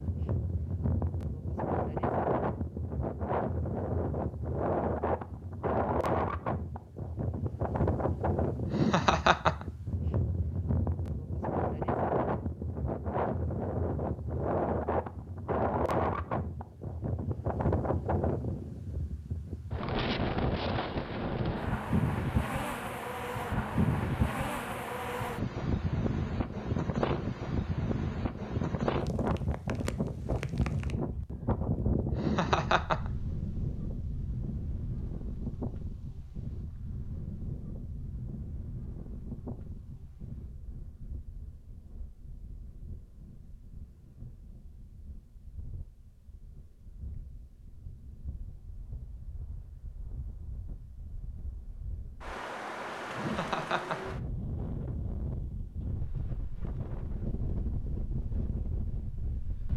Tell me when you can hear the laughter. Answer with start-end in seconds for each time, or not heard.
8.7-9.7, 32.1-33.1, 53.1-54.1.